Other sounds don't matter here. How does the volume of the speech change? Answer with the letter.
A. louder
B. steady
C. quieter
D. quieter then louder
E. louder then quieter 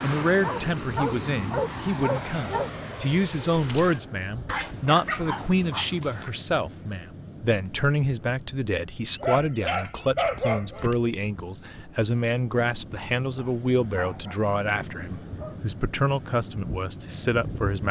B.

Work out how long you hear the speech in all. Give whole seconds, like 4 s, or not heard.
18 s.